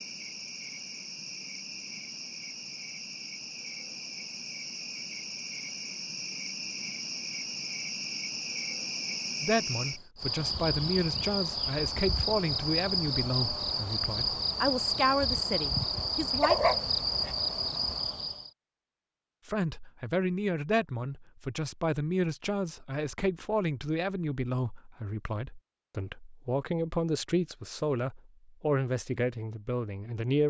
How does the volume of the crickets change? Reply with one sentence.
The volume of the crickets goes up.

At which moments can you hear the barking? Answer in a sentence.
The barking can be heard from 16.3 to 17.3 s.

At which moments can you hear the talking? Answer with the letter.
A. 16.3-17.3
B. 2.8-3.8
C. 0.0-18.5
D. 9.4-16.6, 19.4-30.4
D.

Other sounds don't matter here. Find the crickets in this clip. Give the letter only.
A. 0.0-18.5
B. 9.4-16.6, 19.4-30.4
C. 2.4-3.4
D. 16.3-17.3
A.